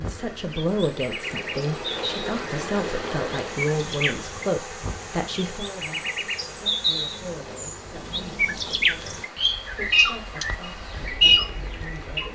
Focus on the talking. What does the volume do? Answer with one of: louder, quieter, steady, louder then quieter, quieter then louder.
quieter.